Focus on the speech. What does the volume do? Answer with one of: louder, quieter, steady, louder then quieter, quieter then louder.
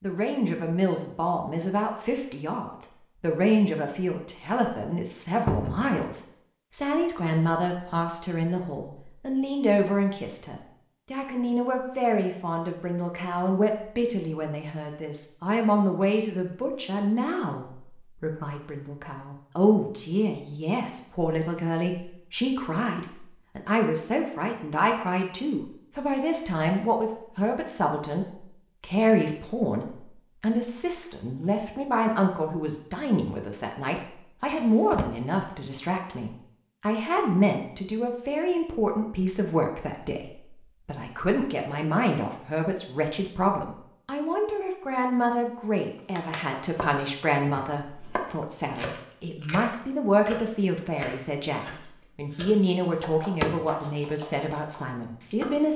steady.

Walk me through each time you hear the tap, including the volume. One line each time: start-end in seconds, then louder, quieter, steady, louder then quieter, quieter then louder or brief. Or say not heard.
not heard.